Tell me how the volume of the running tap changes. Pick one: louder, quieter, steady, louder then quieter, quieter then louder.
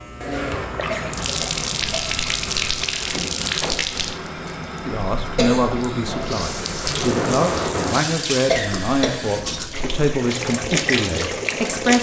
steady.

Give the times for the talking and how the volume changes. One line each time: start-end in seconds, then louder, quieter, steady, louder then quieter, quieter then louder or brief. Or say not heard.
4.8-11.9 steady.